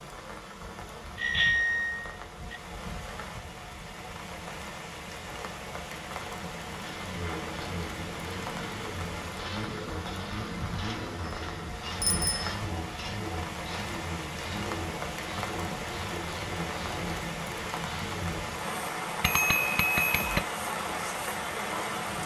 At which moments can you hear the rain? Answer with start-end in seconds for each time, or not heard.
0.0-22.2.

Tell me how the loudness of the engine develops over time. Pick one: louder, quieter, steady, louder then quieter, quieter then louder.
steady.